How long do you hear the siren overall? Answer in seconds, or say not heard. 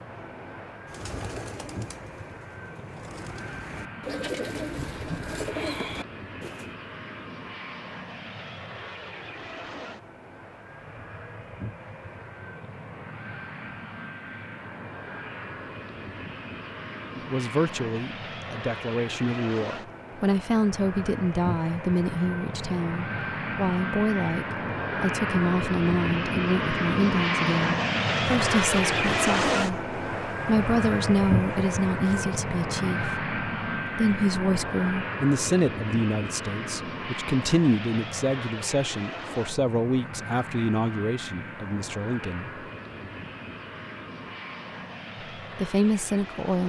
not heard.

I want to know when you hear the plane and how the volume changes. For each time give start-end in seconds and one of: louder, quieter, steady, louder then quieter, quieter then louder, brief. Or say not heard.
0.0-46.6 louder then quieter.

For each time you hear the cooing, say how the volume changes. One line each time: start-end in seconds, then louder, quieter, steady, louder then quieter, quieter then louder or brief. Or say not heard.
0.8-6.7 quieter then louder.